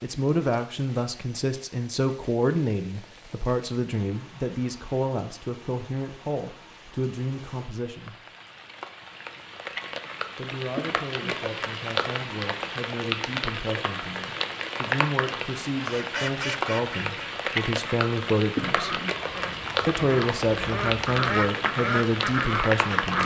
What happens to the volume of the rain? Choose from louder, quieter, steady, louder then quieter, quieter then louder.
louder.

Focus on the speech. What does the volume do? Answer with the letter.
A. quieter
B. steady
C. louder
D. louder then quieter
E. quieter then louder
E.